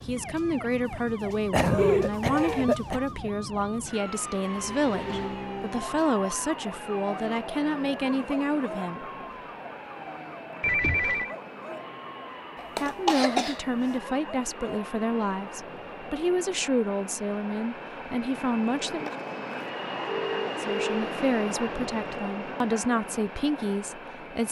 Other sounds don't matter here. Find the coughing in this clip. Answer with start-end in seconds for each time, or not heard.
1.5-3.0, 12.6-13.6.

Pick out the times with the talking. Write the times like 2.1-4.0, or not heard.
0.1-9.1, 12.8-19.1, 20.6-24.4.